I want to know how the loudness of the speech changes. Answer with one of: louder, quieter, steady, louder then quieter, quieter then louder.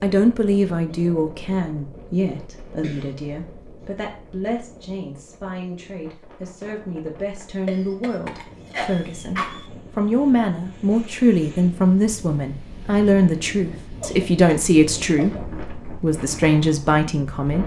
quieter then louder.